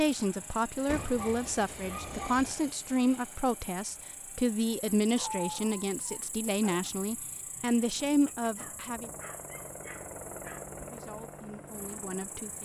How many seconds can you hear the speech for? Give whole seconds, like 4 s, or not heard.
11 s.